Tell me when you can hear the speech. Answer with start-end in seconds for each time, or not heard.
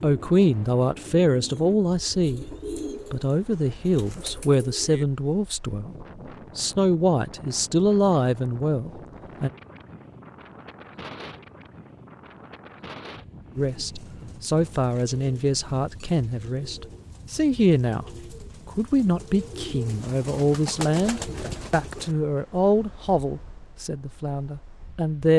0.0-2.5, 3.1-6.0, 6.5-9.5, 13.6-18.1, 18.6-25.3.